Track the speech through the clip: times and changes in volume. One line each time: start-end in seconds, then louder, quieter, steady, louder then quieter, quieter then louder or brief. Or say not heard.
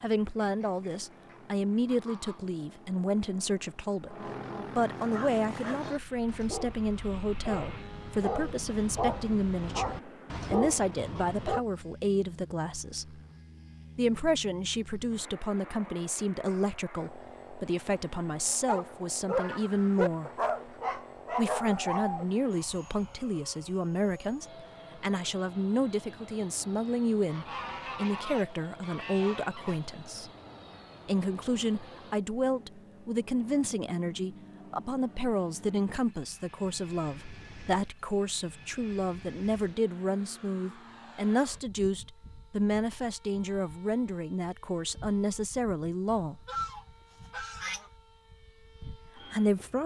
0.0-13.2 steady
13.9-20.3 steady
21.4-30.3 steady
31.1-46.4 steady
48.8-49.8 brief.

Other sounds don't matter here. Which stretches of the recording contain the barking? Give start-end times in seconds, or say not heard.
5.1-11.6, 18.4-22.2.